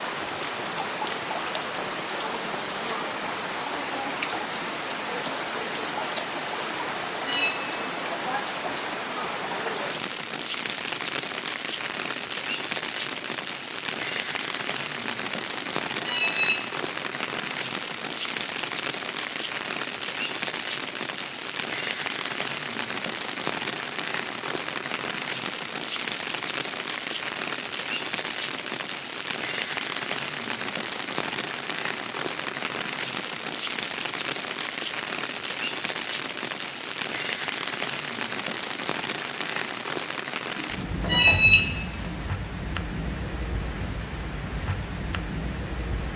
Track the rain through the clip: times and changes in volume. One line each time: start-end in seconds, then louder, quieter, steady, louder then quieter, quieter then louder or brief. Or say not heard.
0.0-46.1 steady.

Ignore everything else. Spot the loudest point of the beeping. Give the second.
41 s.